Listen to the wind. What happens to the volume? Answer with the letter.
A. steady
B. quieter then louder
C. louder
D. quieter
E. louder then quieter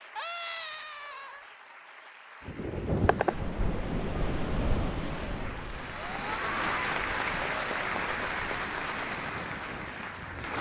D.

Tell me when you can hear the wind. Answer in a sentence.
You can hear the wind from 2.5 to 10.5 s.